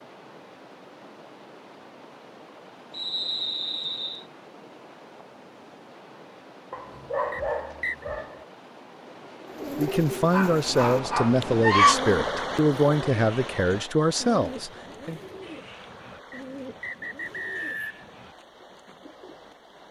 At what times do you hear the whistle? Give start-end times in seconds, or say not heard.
2.9-4.2, 7.3-8.1, 16.3-18.1.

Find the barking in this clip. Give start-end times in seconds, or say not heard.
6.7-8.4, 10.3-11.9.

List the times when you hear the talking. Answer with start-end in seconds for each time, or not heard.
9.8-15.2.